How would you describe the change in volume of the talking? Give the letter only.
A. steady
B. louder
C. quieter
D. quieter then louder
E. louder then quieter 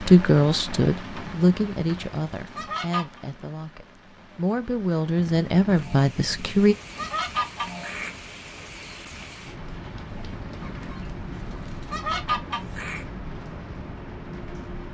D.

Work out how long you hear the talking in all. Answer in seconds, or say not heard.
7 s.